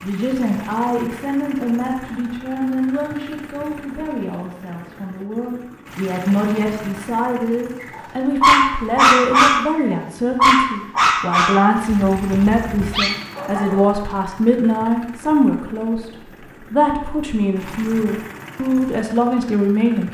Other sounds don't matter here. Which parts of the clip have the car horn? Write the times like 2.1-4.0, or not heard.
not heard.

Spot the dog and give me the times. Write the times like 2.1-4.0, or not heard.
8.0-14.0.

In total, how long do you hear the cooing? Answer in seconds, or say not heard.
not heard.